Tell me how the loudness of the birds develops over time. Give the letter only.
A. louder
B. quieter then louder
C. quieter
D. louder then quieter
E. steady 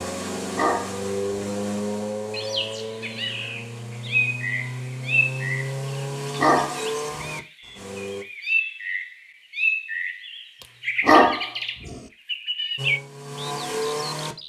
E.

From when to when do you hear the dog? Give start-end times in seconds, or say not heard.
0.6-1.5, 6.3-7.3, 11.1-12.0.